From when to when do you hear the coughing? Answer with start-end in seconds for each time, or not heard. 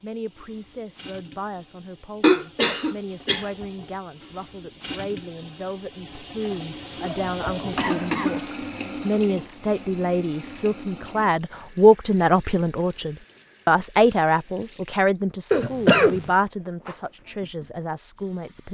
2.2-3.5, 6.5-8.5, 15.5-16.3.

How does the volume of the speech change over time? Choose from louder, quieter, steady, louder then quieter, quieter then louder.
louder then quieter.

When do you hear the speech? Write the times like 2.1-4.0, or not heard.
0.0-18.6.